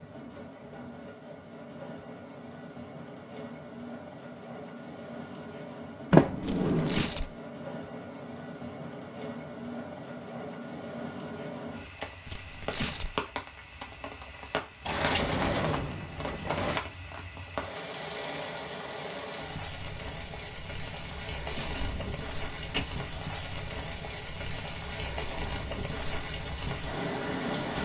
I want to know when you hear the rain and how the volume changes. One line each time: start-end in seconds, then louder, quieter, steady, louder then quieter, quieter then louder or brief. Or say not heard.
0.0-27.7 louder.